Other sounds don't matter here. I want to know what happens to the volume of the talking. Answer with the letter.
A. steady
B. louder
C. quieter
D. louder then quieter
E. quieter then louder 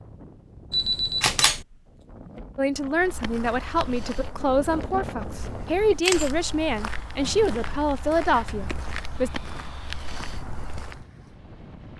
A.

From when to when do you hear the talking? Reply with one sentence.
The talking can be heard from 2.5 to 9.3 s.